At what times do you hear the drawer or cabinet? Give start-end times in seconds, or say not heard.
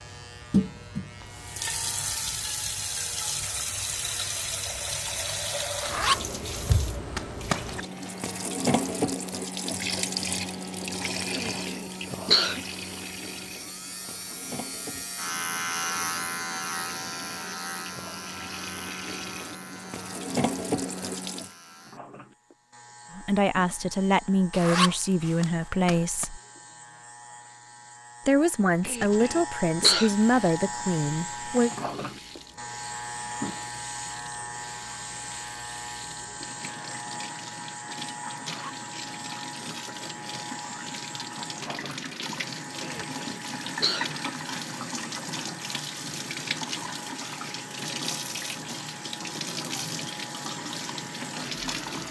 not heard.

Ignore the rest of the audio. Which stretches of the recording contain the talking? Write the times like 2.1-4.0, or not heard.
23.1-26.4, 28.2-31.7.